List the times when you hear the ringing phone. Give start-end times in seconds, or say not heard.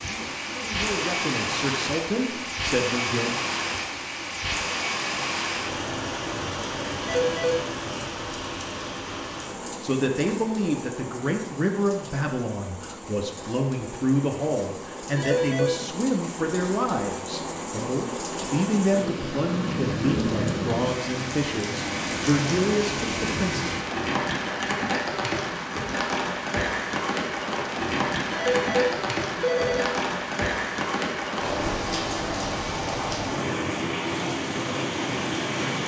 7.0-7.7, 15.2-15.8, 28.3-29.9.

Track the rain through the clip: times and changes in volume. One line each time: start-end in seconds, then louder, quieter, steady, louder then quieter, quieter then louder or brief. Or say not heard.
0.0-35.8 quieter then louder.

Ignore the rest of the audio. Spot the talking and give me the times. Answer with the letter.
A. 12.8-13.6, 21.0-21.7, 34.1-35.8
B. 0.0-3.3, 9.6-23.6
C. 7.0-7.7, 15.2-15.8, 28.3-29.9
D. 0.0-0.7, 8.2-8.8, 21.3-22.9
B.